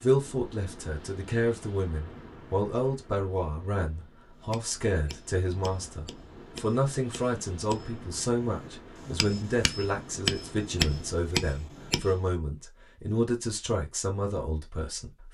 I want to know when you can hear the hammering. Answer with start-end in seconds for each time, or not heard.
4.4-12.2.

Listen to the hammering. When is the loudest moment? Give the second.
11 s.